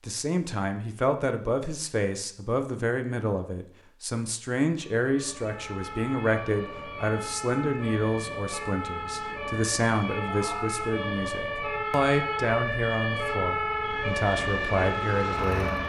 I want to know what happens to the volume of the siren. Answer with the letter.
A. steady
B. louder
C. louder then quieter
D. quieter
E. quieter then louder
B.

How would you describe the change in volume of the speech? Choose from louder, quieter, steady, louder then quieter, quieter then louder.
steady.